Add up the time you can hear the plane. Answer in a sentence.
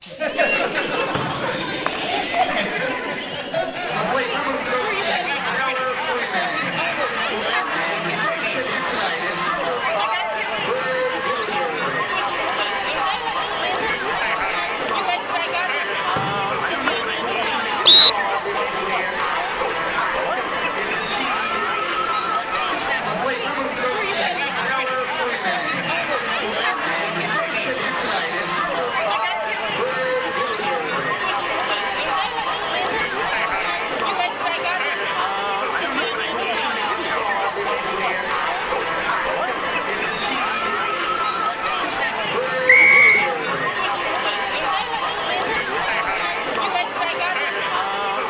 The plane can't be heard in this clip.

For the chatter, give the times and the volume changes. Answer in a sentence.
You can hear the chatter from 0.0 to 48.2 s, at a steady volume.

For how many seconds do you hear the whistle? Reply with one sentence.
The whistle can be heard for 4 seconds in total.